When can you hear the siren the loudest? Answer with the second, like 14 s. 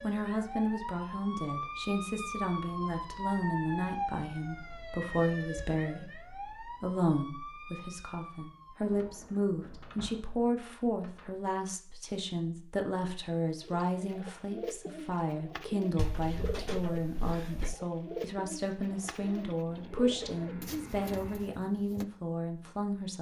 4 s.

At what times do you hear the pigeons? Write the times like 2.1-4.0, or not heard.
13.6-22.1.